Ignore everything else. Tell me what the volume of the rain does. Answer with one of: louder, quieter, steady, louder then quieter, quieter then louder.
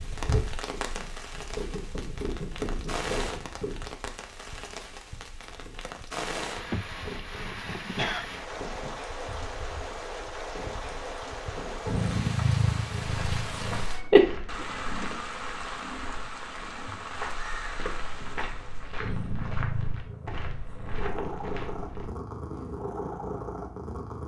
steady.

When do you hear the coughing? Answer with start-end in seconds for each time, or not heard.
6.7-8.3, 14.1-15.1.